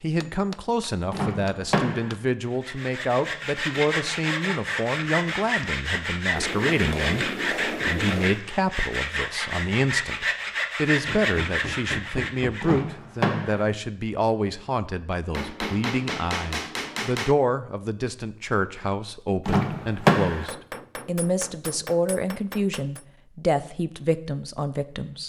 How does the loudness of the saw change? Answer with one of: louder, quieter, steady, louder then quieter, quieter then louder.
steady.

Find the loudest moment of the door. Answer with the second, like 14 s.
20 s.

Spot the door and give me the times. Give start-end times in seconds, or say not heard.
1.1-2.1, 12.6-13.7, 19.4-20.4.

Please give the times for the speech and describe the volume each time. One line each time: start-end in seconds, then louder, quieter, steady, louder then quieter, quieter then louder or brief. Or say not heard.
0.0-25.2 steady.